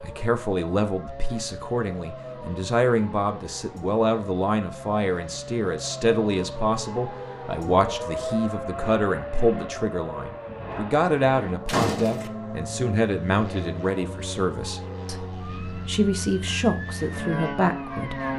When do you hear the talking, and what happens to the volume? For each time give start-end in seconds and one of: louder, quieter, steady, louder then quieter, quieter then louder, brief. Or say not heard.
0.0-18.2 steady.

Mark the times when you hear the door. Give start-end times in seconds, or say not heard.
11.7-12.3.